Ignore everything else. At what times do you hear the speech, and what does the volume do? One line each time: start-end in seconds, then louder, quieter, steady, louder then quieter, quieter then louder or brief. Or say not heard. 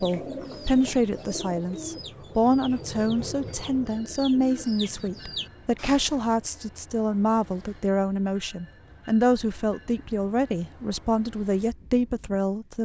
0.0-12.8 steady.